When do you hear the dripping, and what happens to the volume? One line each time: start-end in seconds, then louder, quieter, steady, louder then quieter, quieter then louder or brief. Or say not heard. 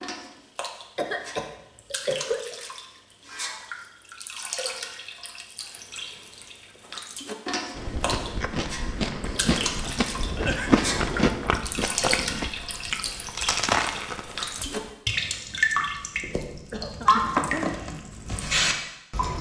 0.0-19.3 louder.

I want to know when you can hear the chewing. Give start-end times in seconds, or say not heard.
7.8-14.9.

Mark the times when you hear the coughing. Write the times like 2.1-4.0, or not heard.
0.9-2.5, 9.8-10.7, 16.7-17.8.